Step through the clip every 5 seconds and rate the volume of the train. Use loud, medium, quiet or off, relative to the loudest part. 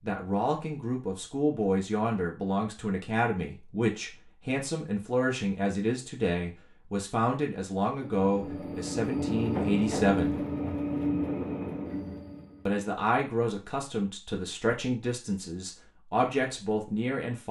off, loud, loud, off.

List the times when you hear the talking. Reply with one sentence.
The talking can be heard from 0.1 to 10.4 s and from 12.7 to 17.4 s.